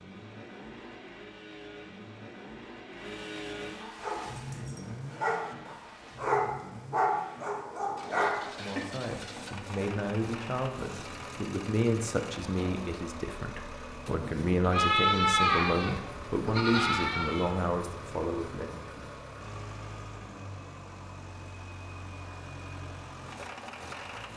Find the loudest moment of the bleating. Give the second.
15 s.